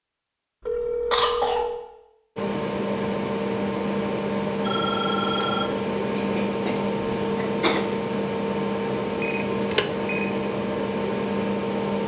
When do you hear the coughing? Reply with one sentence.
You can hear the coughing from 1.1 to 1.8 s and from 6.1 to 7.8 s.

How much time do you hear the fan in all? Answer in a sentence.
You can hear the fan for 10 seconds altogether.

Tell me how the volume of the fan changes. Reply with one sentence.
The loudness of the fan stays about the same.